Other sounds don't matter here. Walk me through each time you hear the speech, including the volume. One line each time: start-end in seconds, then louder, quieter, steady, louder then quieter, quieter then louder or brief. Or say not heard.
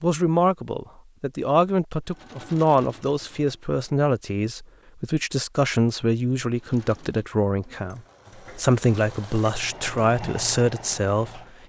0.0-11.6 steady.